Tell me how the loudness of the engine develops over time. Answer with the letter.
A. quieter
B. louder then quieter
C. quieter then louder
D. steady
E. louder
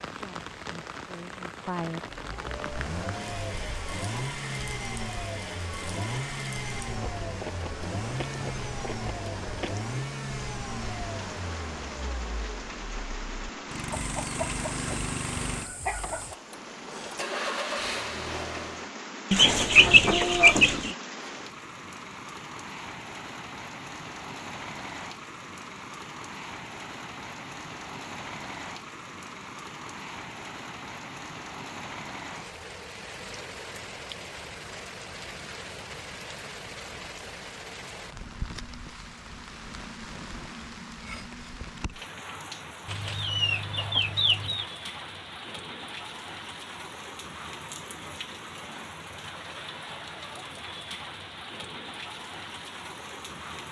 D.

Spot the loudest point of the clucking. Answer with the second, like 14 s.
20 s.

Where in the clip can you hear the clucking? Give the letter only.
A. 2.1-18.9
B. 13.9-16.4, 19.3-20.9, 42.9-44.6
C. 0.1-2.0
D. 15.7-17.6
B.